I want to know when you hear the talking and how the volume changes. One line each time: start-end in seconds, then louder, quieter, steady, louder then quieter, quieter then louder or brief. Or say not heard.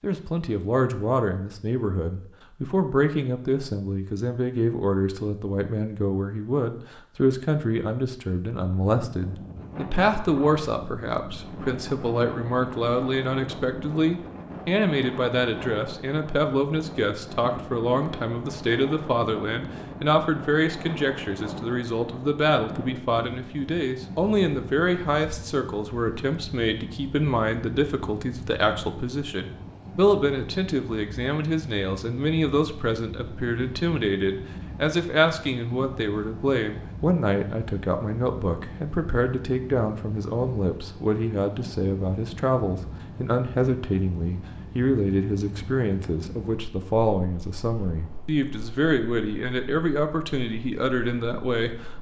0.0-51.9 steady.